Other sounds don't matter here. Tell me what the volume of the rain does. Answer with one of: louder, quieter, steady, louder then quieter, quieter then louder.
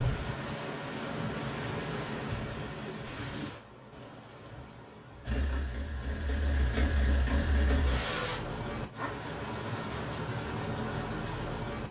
quieter then louder.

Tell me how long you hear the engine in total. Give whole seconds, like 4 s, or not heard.
3 s.